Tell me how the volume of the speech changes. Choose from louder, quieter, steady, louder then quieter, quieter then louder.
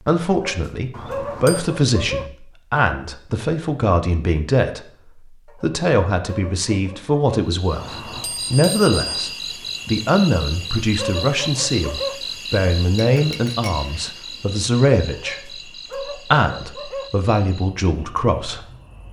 steady.